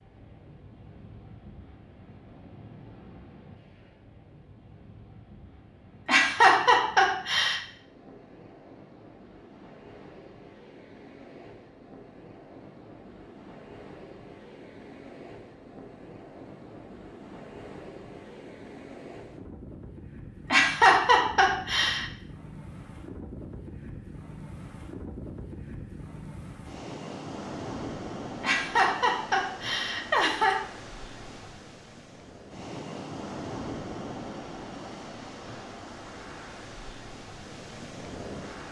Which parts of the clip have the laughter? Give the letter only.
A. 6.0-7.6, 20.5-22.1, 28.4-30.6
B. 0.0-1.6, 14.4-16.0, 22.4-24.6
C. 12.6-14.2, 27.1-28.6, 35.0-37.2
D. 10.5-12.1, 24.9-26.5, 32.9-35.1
A.